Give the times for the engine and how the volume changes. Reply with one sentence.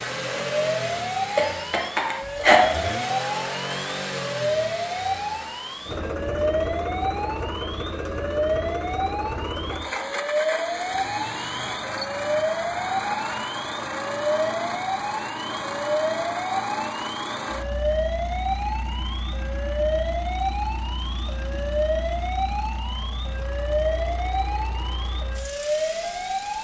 The engine can be heard from 0.0 to 26.6 s, getting quieter.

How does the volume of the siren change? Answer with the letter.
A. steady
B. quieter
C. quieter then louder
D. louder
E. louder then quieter
A.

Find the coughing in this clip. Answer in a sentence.
The coughing can be heard from 1.4 to 3.0 s.